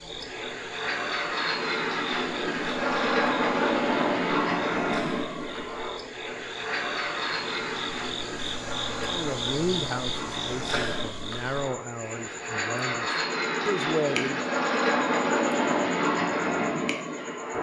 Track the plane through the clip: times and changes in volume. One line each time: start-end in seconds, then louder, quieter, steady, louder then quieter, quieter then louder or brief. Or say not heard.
0.0-17.5 quieter then louder.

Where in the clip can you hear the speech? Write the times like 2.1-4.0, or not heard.
9.1-14.4.